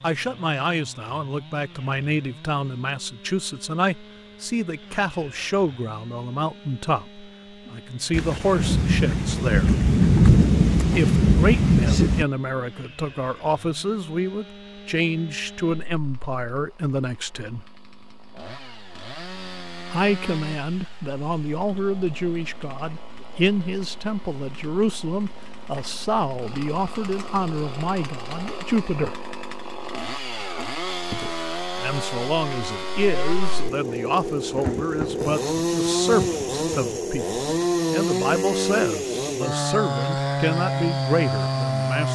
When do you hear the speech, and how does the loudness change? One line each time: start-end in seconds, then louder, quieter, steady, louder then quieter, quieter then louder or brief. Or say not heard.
0.0-9.8 steady
10.9-17.6 steady
19.9-29.2 steady
31.1-42.1 steady.